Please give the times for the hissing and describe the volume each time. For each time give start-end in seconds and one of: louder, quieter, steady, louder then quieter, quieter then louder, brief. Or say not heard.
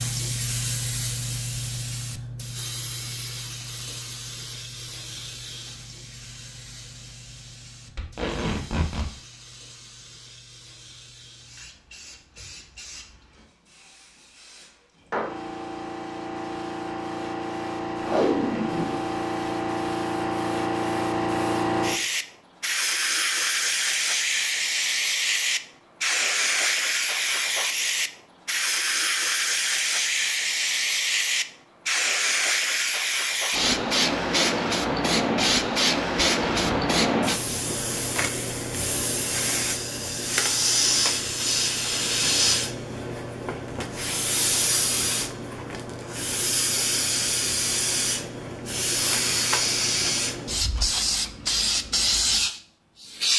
0.0-53.3 louder.